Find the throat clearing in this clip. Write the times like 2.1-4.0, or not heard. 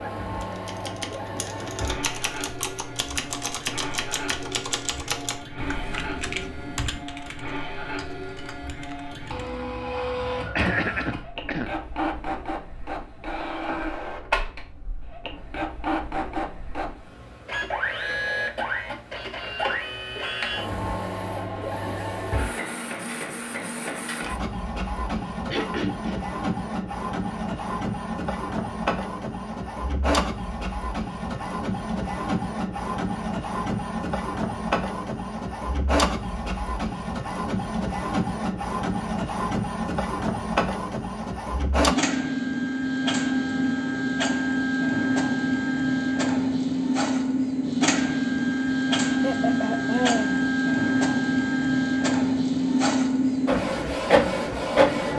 10.6-11.7, 25.4-26.2, 49.2-50.4.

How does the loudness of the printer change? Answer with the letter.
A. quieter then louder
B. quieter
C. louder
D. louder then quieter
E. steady
C.